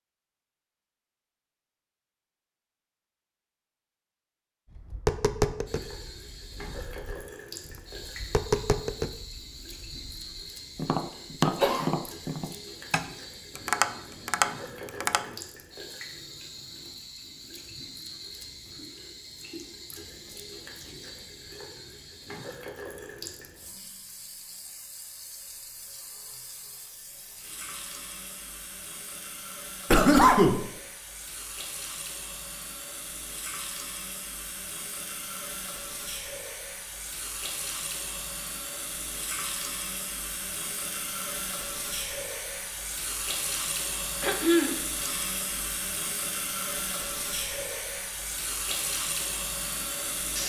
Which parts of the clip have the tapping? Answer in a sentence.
You can hear the tapping from 4.7 to 15.3 s.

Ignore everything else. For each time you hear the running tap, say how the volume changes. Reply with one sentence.
The running tap can be heard from 5.7 to 50.4 s, getting louder.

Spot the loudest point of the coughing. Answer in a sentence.
The loudest moment of the coughing is at 30 seconds.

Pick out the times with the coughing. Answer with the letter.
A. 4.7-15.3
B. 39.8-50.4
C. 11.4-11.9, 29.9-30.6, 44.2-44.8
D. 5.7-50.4
C.